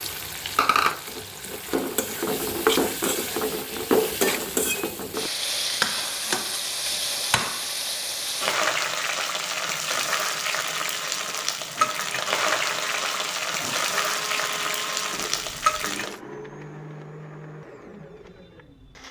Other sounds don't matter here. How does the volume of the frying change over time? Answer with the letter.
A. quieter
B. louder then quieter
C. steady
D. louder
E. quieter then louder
C.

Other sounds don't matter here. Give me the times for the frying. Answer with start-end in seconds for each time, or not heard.
0.0-16.1.